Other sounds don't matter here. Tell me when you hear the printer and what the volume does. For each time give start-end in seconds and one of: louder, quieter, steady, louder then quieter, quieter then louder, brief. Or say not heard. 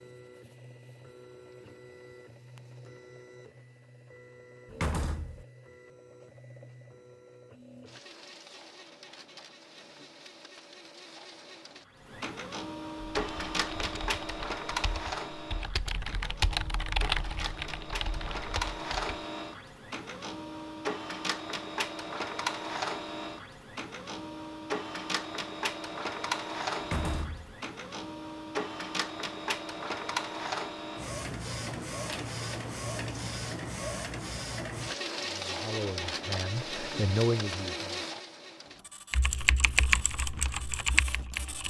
0.0-41.6 louder.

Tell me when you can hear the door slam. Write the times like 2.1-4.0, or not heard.
4.7-5.5, 26.8-27.6.